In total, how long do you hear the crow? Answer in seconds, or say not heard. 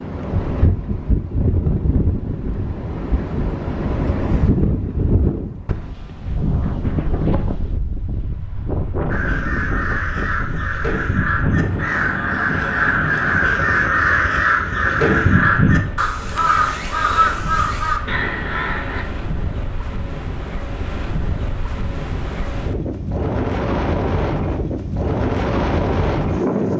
10 s.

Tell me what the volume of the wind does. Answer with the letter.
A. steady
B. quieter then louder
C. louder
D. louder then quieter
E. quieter
B.